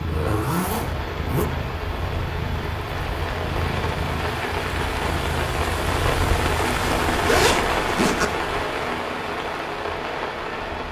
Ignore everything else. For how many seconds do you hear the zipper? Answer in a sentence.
The zipper can be heard for 3 seconds in total.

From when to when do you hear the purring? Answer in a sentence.
The purring can be heard from 0.0 to 7.5 s.